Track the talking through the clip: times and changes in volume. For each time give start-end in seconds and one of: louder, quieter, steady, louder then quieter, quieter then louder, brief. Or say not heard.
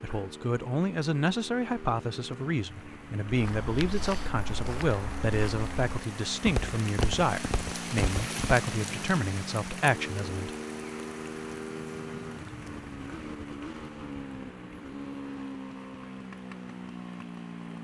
0.0-10.5 steady.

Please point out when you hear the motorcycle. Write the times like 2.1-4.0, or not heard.
0.0-17.7.